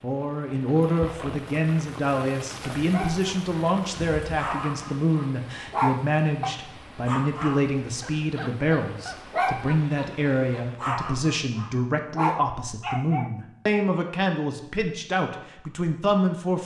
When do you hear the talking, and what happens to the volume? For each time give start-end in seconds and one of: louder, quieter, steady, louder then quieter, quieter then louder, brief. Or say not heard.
0.0-16.6 steady.